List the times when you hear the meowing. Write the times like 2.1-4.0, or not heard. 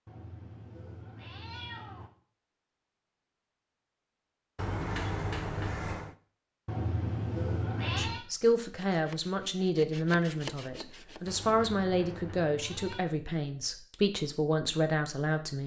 0.1-2.1, 6.7-8.2, 11.7-13.1.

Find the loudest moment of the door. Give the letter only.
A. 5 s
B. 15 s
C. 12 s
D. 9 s
A.